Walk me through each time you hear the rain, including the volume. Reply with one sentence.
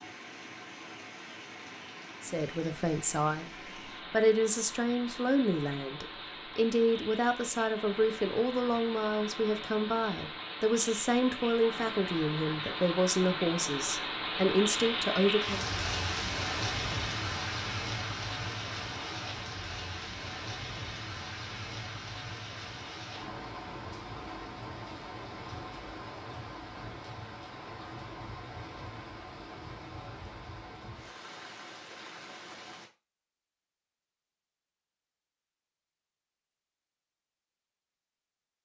The rain can be heard from 0.0 to 32.9 s, getting louder then quieter.